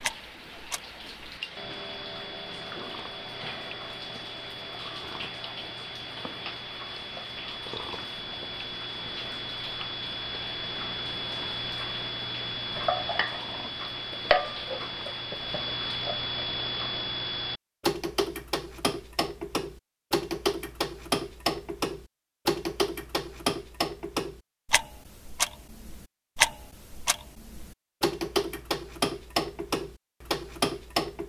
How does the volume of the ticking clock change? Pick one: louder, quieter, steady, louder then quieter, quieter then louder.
louder.